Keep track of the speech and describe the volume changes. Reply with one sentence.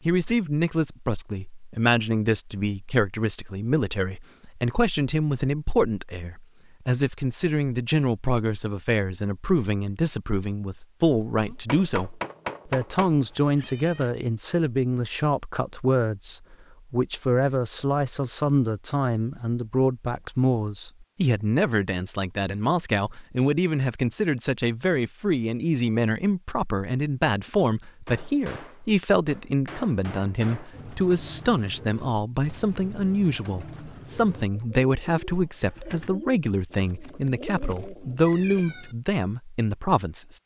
The volume of the speech stays about the same.